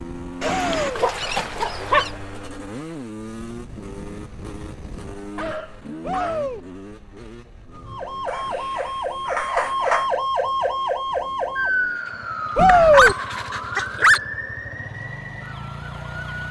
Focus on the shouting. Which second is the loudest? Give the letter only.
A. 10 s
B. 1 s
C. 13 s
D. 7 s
C.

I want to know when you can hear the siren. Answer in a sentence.
The siren can be heard from 7.7 to 16.4 s.